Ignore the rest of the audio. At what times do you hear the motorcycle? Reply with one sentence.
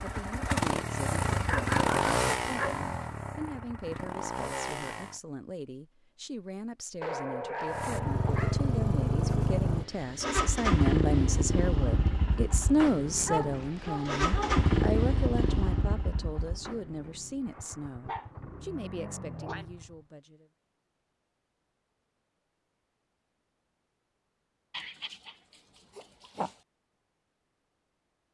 You can hear the motorcycle from 0.0 to 5.2 s and from 7.7 to 20.1 s.